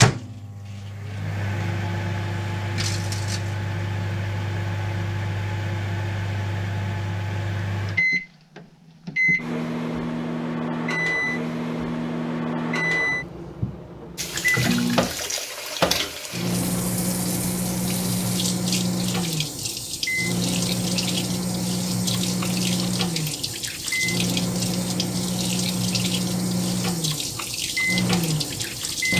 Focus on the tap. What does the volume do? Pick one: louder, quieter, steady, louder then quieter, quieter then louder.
steady.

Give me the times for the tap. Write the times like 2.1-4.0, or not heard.
14.2-29.1.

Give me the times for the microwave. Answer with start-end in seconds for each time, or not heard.
0.0-29.1.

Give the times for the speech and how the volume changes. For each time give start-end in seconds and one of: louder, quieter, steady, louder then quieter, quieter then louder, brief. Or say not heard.
not heard.